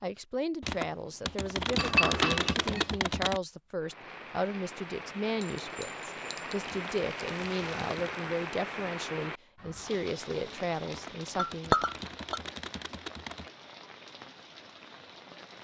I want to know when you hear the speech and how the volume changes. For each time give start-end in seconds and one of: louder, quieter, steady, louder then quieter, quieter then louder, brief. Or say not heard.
0.0-11.8 steady.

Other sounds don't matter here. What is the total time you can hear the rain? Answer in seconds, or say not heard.
12 s.